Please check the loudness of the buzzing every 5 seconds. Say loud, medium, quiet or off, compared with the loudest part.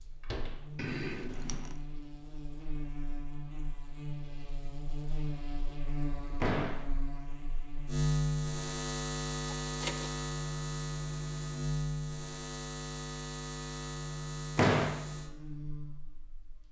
medium, loud, loud, medium.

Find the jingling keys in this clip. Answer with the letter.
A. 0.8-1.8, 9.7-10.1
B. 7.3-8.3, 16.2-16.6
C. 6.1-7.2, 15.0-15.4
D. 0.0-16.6
A.